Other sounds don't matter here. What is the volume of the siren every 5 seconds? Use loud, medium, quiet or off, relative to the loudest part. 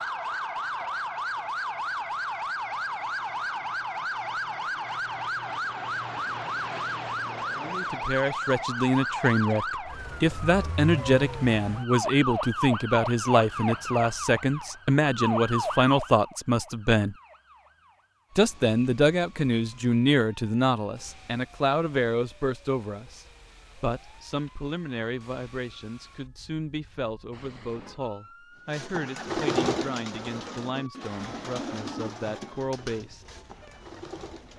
loud, loud, loud, medium, quiet, quiet, quiet.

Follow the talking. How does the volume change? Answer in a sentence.
The loudness of the talking goes down.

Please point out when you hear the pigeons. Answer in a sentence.
The pigeons can be heard from 28.7 to 34.5 s.